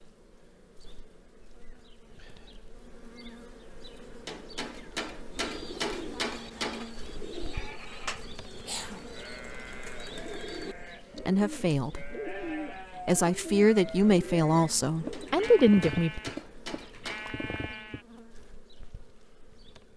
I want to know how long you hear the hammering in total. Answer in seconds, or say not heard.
5 s.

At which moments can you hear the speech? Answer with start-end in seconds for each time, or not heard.
11.2-12.2, 13.1-16.2.